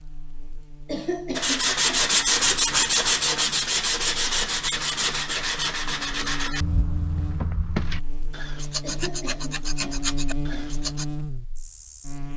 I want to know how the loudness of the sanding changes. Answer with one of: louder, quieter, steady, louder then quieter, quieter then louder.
quieter.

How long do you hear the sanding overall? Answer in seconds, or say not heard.
10 s.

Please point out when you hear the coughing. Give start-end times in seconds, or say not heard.
0.8-2.2, 8.8-10.8.